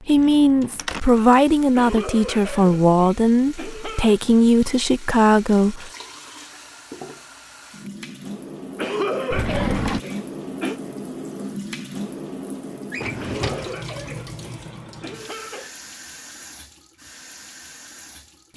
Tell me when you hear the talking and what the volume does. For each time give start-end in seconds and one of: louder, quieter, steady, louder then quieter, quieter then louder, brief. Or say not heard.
0.1-5.9 steady.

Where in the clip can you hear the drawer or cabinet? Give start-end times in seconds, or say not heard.
0.1-1.0, 9.3-10.0, 12.9-13.8.